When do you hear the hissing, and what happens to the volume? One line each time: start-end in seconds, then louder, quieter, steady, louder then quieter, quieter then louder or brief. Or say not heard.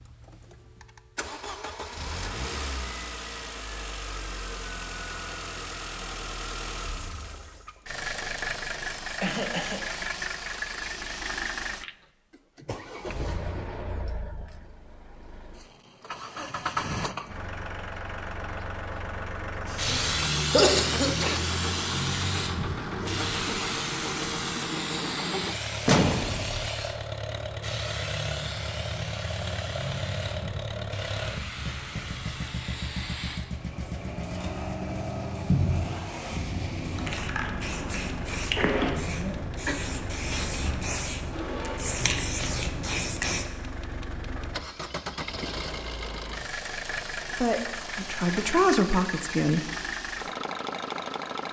19.8-43.5 quieter then louder.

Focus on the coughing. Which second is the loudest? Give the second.
21 s.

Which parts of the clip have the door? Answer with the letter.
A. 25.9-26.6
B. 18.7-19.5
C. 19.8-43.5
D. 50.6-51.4
A.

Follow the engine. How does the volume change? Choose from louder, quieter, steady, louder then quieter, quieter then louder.
steady.